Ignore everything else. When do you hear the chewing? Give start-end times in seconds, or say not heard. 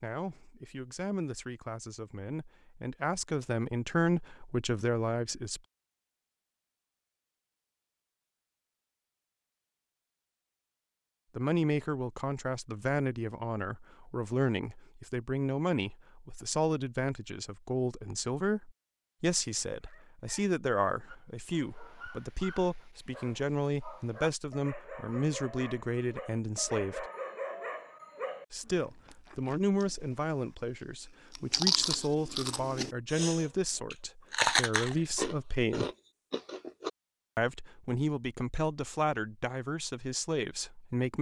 28.6-36.9.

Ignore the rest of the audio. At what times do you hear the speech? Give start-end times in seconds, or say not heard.
0.0-5.6, 11.3-27.1, 28.5-35.9, 37.4-41.1.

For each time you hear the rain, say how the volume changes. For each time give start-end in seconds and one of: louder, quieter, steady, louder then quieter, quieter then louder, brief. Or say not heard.
not heard.